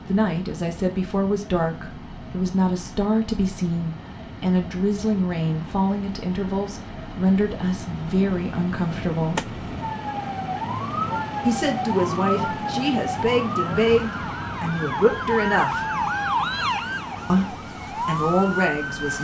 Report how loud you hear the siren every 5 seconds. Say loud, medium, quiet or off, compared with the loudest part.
quiet, medium, loud, loud.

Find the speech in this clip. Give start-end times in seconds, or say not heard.
0.1-9.4, 11.4-15.8, 17.3-19.2.